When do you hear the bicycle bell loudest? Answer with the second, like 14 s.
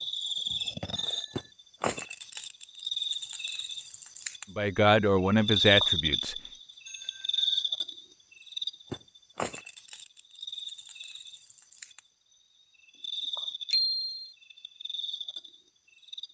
14 s.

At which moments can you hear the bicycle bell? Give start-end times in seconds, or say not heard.
0.9-1.5, 6.8-7.7, 13.7-14.3.